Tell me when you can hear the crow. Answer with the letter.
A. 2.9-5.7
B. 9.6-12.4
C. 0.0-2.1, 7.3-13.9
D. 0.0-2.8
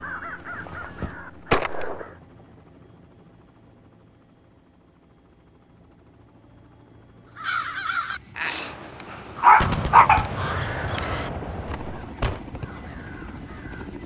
C.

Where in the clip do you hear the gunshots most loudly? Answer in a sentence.
The volume of the gunshots peaks at 10 seconds.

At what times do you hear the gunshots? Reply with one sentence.
The gunshots can be heard from 9.6 to 12.4 s.